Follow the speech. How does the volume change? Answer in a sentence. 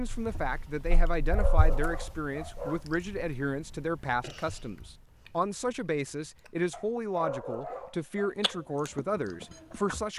The loudness of the speech stays about the same.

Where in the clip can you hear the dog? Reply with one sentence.
The dog can be heard from 0.9 to 2.9 s and from 6.7 to 8.3 s.